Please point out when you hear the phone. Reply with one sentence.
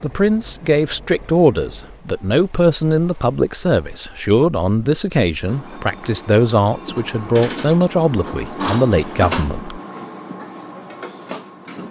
The phone can't be heard in this clip.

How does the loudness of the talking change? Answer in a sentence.
The loudness of the talking stays about the same.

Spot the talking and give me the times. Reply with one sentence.
You can hear the talking from 0.0 to 9.8 s.